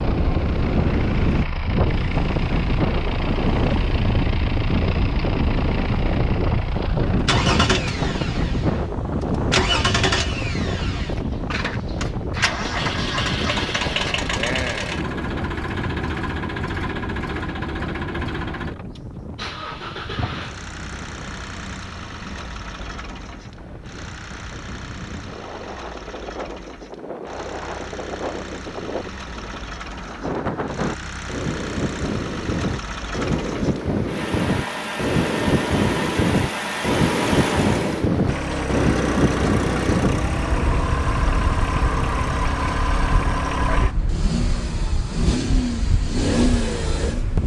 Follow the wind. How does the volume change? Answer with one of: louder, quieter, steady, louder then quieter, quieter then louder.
quieter then louder.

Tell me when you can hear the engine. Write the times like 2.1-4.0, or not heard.
0.0-47.4.